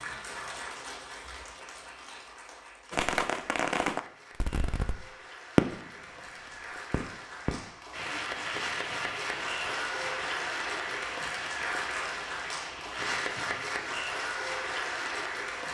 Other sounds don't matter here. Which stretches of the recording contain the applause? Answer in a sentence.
The applause can be heard from 0.0 to 15.6 s.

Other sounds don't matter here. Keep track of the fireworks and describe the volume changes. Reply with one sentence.
The volume of the fireworks goes down.